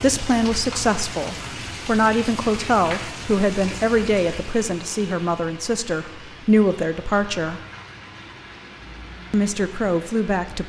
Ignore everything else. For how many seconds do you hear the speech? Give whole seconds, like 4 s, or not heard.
9 s.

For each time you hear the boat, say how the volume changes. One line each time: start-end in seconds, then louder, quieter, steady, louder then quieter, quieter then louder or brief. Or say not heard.
not heard.